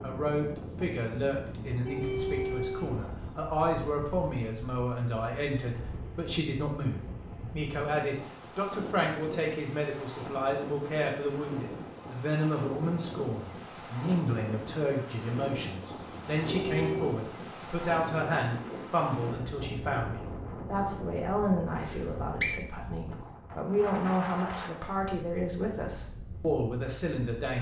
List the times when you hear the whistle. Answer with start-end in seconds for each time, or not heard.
21.8-22.6.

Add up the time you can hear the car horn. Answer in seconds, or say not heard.
3 s.